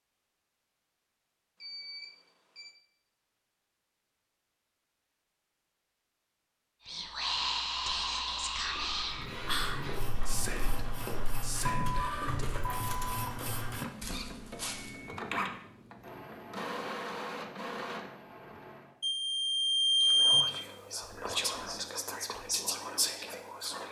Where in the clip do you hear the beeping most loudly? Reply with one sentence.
The loudest moment of the beeping is at 20 seconds.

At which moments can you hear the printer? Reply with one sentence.
The printer can be heard from 9.0 to 18.9 s.